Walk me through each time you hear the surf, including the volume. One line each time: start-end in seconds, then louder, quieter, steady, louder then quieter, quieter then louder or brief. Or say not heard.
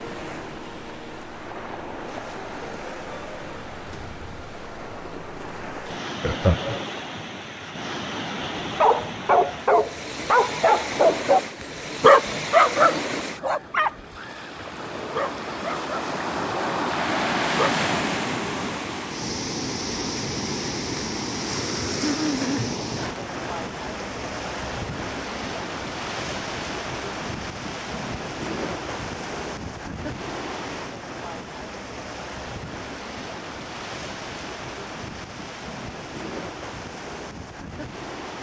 0.0-38.3 louder then quieter.